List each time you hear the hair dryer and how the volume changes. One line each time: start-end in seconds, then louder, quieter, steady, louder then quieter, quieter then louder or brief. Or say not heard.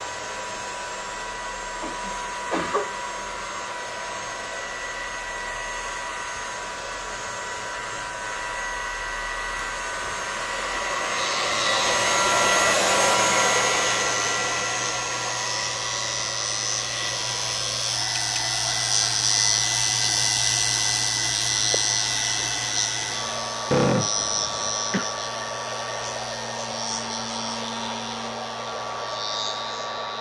0.0-30.1 louder then quieter.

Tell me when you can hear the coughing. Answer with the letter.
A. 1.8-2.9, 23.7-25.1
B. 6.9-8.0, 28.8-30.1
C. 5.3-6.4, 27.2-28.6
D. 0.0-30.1
A.